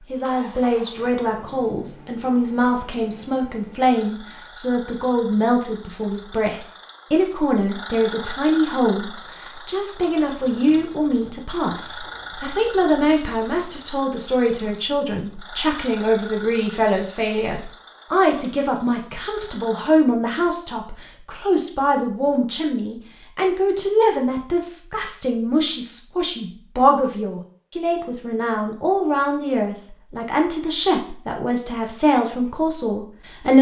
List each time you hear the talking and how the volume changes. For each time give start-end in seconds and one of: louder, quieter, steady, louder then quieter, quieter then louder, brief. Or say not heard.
0.1-33.5 steady.